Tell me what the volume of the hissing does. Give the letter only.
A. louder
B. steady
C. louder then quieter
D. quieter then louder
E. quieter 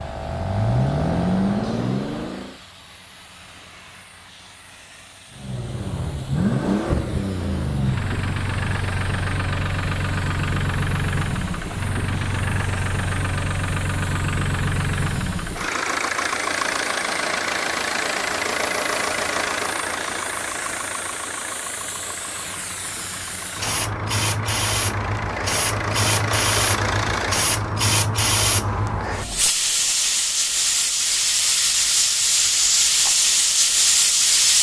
A.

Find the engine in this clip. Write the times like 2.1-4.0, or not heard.
0.0-2.6, 5.3-27.8.